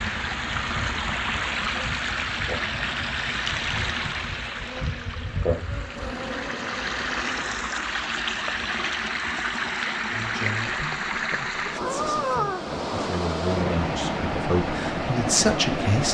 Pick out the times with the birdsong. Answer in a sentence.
The birdsong can't be heard in this clip.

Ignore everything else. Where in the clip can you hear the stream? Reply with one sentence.
The stream can be heard from 0.0 to 16.0 s.